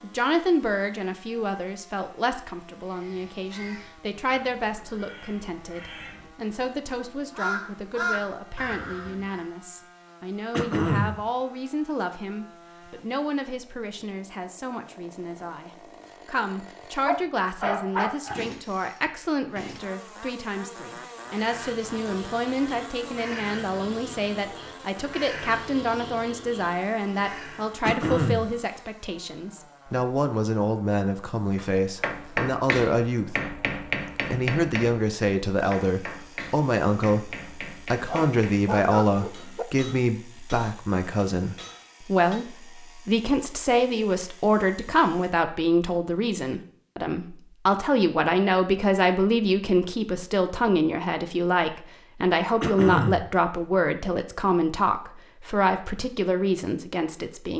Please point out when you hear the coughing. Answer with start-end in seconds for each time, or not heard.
10.5-11.2, 27.8-28.5, 52.6-53.3.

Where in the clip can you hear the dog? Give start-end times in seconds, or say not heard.
17.1-18.4, 38.0-39.6.